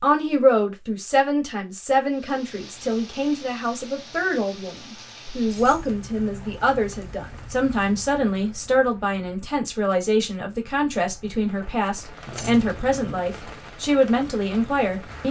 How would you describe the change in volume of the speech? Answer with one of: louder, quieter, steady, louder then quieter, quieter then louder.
steady.